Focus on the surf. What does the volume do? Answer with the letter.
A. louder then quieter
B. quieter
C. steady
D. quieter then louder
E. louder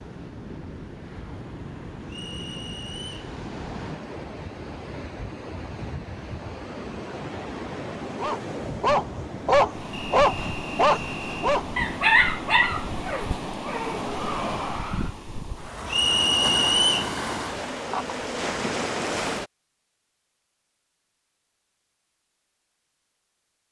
E.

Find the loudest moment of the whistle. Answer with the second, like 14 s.
17 s.